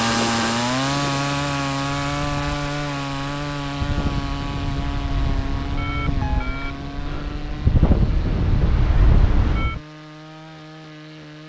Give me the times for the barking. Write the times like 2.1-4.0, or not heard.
not heard.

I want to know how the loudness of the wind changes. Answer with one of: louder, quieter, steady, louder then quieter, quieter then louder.
louder.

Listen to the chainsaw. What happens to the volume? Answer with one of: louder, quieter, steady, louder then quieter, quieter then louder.
quieter.